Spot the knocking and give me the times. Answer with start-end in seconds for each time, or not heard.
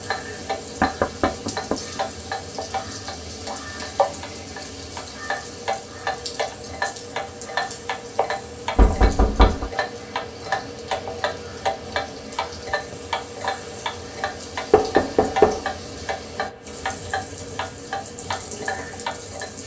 0.8-1.8, 8.8-9.7, 14.7-15.6.